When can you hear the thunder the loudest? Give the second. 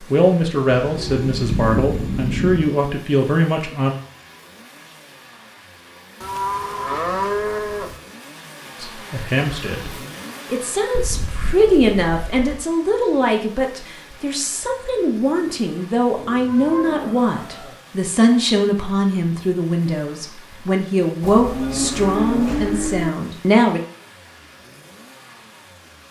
2 s.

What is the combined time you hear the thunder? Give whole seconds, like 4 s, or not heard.
2 s.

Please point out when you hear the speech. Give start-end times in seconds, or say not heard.
0.1-4.0, 8.8-9.9, 10.5-23.8.